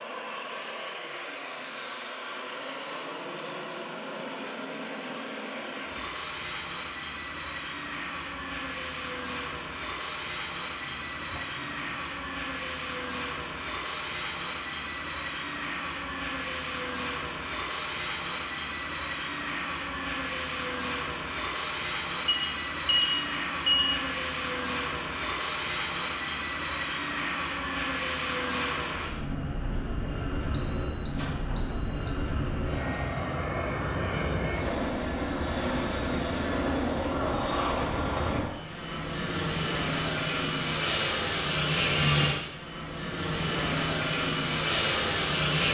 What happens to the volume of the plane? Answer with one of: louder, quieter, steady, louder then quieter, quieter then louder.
louder.